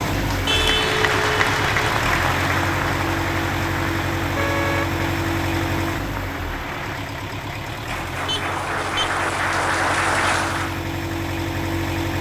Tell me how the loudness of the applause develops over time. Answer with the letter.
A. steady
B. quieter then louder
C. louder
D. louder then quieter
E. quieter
B.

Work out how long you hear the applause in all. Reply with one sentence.
The applause can be heard for 11 seconds in total.